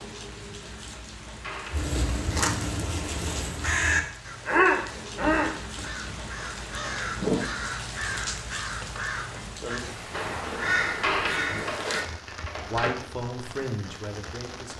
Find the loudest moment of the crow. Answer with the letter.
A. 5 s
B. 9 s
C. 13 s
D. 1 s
A.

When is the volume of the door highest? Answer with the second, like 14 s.
11 s.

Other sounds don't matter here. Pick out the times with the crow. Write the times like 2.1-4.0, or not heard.
1.7-12.1.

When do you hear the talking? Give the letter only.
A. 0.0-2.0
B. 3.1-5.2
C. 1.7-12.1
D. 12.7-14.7
D.